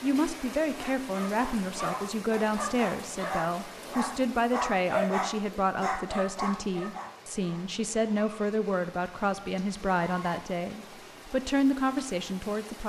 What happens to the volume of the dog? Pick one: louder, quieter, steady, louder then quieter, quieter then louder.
louder then quieter.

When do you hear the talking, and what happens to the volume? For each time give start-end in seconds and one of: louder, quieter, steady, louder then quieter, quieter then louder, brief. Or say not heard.
0.0-12.8 steady.